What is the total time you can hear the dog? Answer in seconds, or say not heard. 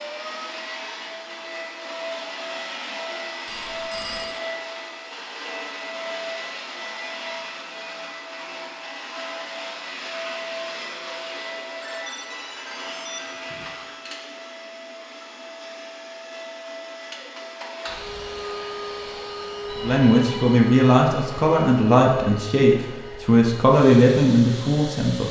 not heard.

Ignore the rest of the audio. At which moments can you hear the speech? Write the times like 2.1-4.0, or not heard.
19.8-25.2.